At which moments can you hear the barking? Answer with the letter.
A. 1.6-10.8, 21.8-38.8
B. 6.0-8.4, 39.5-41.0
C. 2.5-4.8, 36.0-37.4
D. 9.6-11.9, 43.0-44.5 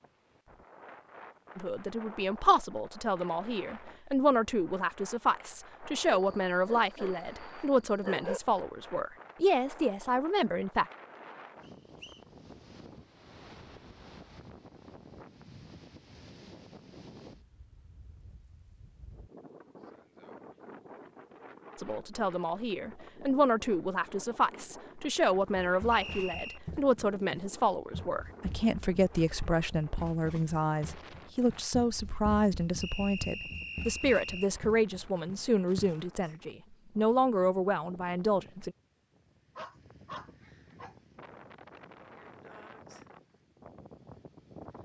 B.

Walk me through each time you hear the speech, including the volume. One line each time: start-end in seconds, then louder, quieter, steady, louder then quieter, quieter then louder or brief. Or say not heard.
1.6-10.8 steady
21.8-38.8 steady.